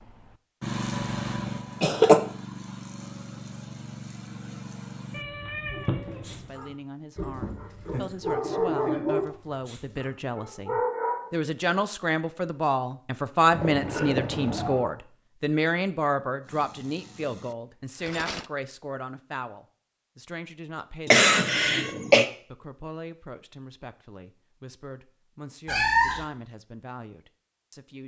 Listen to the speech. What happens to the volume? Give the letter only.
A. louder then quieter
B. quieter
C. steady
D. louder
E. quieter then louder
A.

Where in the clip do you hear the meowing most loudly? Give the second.
26 s.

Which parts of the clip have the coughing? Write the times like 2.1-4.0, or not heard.
0.9-2.2, 21.1-22.2.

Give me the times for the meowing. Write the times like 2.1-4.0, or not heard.
5.1-6.5, 13.5-14.9, 25.6-26.2.